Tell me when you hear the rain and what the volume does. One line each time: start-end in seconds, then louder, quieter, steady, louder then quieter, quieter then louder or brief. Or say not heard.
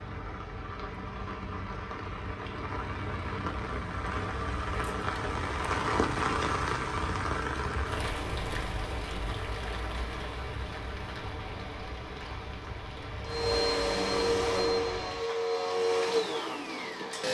0.0-17.2 louder then quieter.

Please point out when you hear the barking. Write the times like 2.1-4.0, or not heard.
not heard.